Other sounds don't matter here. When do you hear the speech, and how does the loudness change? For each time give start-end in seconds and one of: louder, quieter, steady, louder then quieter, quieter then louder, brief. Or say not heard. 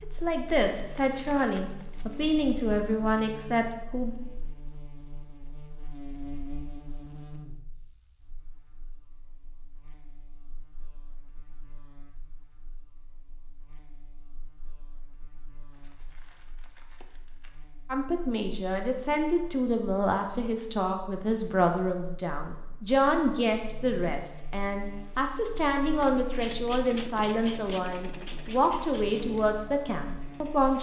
0.0-4.2 steady
17.9-30.7 steady.